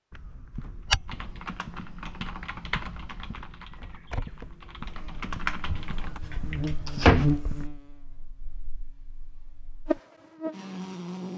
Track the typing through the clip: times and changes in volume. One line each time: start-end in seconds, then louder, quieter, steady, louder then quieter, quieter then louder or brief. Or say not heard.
1.1-6.2 quieter then louder.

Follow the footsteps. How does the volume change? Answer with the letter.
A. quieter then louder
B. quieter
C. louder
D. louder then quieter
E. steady
B.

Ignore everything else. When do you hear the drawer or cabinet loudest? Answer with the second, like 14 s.
7 s.